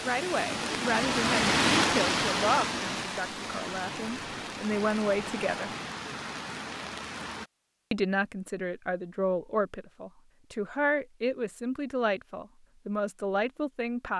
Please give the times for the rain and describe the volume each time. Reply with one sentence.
You can hear the rain from 0.0 to 7.5 s, getting quieter.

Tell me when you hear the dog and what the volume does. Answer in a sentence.
The dog can't be heard in this clip.